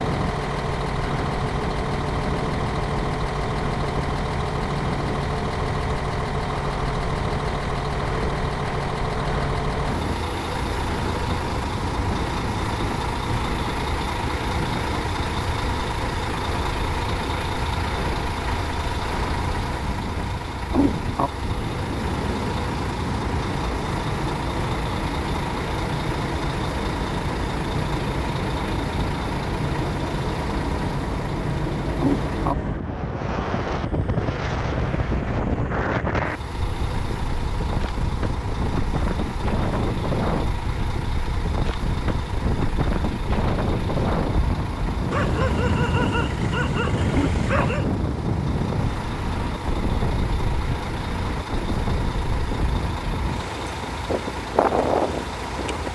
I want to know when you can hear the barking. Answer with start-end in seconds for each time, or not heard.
45.1-47.9.